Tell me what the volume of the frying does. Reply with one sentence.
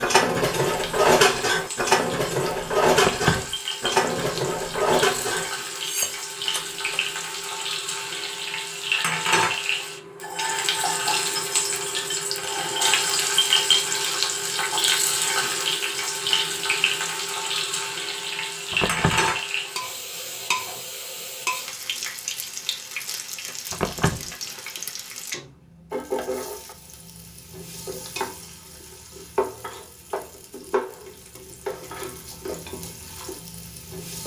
The loudness of the frying goes up, then down.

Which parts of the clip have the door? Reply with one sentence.
You can hear the door from 3.0 to 3.5 s, from 18.7 to 19.3 s and from 23.7 to 24.3 s.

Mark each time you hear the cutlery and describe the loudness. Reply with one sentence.
You can hear the cutlery from 0.0 to 7.1 s, getting quieter.